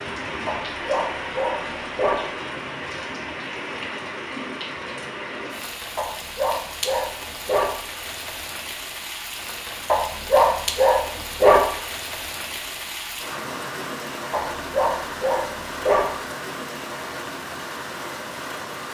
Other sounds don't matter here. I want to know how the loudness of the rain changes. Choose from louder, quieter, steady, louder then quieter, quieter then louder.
steady.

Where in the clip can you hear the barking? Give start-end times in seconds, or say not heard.
0.5-2.2, 6.0-7.8, 9.8-11.7, 14.3-16.1.